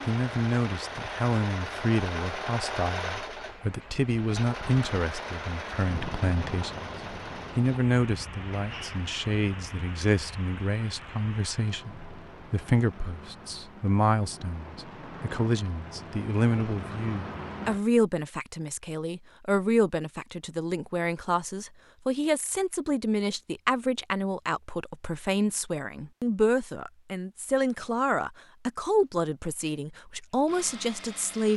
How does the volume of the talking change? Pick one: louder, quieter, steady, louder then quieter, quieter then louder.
steady.